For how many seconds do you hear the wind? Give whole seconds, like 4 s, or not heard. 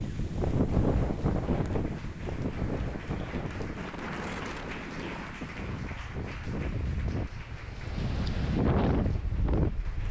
10 s.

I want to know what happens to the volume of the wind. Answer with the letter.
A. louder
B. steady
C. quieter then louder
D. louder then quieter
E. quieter
C.